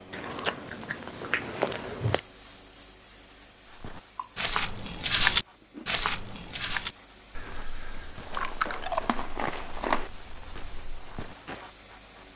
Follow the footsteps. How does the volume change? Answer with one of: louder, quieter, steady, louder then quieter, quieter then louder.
quieter.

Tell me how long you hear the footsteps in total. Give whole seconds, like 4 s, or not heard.
8 s.